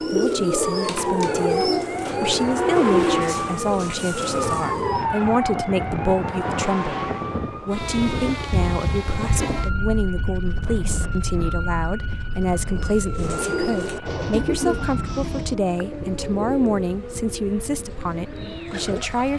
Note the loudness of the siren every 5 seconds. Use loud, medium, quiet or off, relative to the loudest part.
loud, loud, medium, medium.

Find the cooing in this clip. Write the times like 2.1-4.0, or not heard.
0.0-5.0, 12.7-19.3.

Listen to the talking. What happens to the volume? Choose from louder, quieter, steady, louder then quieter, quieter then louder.
steady.